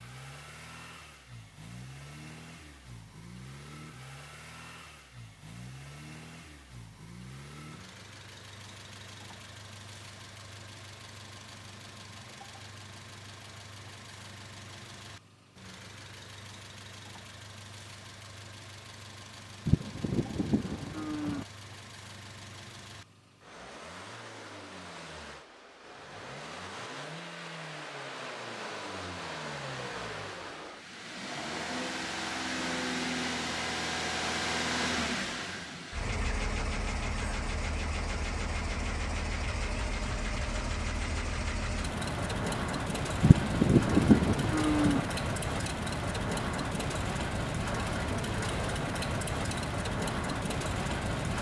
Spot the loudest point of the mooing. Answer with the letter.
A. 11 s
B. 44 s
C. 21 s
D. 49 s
B.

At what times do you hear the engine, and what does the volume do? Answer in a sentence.
You can hear the engine from 0.0 to 51.3 s, getting louder.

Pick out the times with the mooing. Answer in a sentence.
The mooing can be heard from 19.6 to 21.4 s and from 43.2 to 45.0 s.